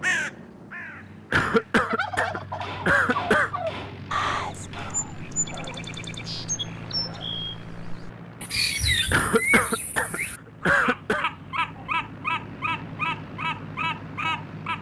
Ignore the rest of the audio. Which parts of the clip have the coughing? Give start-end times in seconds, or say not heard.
1.3-3.5, 9.1-11.2.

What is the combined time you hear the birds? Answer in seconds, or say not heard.
15 s.